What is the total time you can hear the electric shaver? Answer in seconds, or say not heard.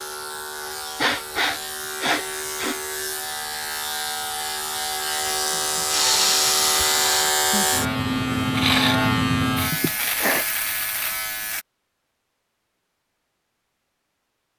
12 s.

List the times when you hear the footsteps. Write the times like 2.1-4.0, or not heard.
not heard.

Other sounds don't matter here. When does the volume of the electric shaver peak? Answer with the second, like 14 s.
9 s.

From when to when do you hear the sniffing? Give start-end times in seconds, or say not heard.
0.9-2.8, 5.5-7.3, 9.7-10.4.